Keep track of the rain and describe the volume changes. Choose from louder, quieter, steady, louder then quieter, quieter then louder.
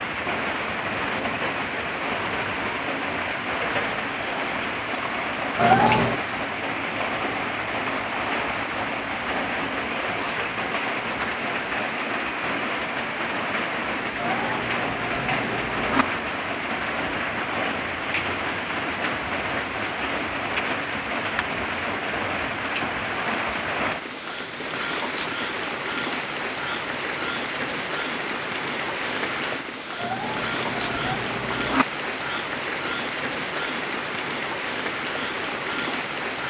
steady.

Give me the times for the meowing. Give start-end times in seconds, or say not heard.
5.5-6.2, 14.2-16.1, 29.9-31.9.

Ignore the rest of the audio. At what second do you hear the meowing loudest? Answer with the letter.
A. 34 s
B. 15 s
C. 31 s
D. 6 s
D.